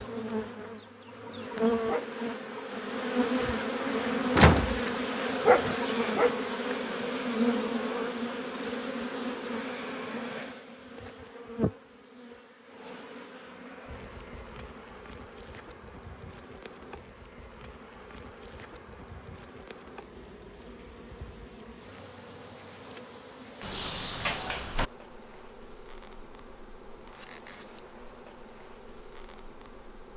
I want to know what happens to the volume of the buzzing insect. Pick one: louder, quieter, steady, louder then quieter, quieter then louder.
quieter.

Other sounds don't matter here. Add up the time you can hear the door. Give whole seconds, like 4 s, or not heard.
2 s.